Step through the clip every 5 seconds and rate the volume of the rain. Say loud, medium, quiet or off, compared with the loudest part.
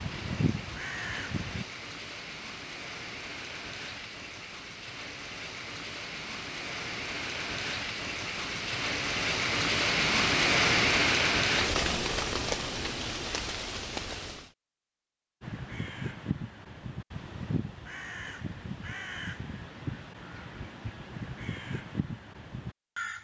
quiet, medium, loud, off, off.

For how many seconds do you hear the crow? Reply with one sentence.
The crow can be heard for 9 seconds in total.